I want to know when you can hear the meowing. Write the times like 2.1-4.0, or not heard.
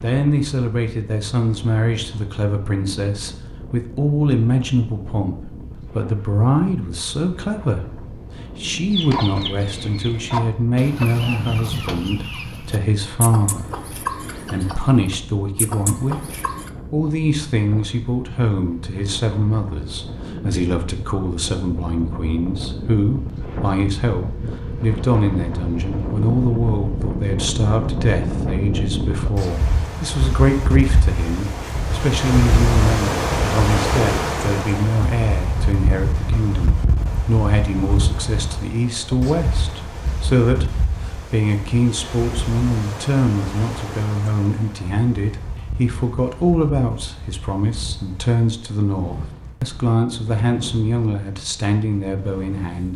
not heard.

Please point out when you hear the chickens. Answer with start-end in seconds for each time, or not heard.
8.9-16.7.